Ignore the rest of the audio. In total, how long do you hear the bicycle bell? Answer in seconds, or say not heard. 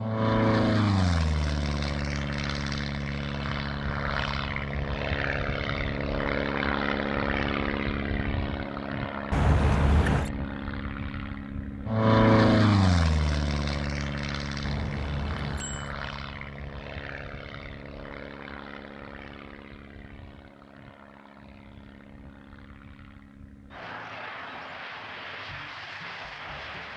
2 s.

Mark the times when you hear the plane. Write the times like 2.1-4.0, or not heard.
0.0-26.9.